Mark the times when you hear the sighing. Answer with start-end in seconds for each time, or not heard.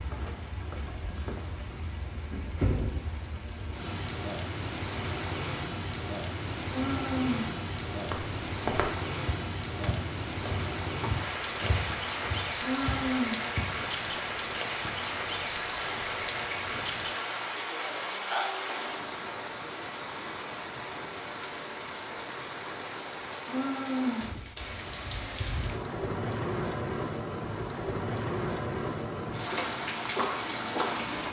6.7-7.5, 12.6-13.5, 23.4-24.4.